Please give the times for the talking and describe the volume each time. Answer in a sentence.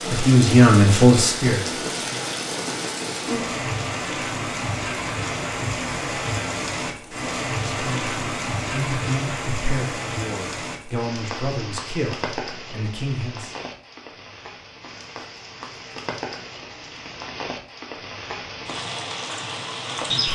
The talking can be heard briefly from 0.1 to 2.2 s; and from 7.7 to 13.6 s, at a steady volume.